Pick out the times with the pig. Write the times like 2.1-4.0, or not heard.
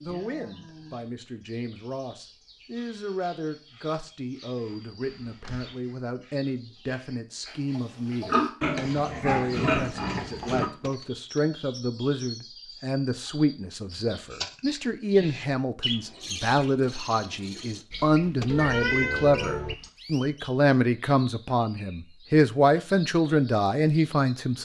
7.5-10.7.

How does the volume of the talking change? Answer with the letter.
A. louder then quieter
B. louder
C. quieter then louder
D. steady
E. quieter
B.